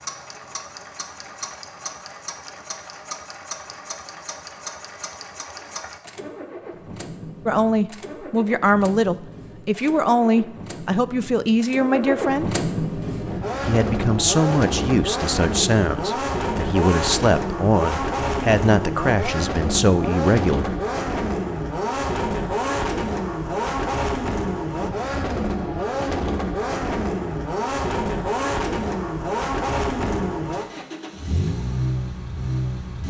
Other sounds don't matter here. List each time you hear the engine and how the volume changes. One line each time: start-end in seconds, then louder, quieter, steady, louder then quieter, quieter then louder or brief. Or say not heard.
0.0-33.0 louder.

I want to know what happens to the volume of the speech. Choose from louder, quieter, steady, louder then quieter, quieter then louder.
steady.